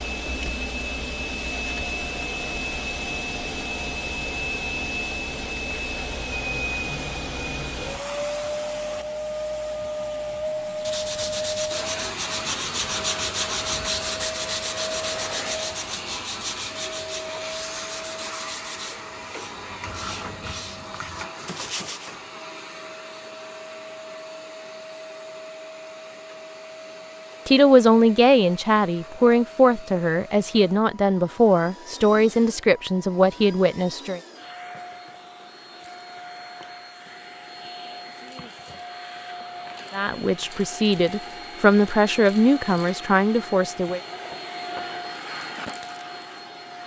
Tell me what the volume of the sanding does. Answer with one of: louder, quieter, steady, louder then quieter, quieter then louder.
quieter.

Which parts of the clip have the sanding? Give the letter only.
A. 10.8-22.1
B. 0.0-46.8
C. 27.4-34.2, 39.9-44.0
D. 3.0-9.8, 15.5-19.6
A.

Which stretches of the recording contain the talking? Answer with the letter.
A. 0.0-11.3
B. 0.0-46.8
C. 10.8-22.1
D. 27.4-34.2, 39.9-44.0
D.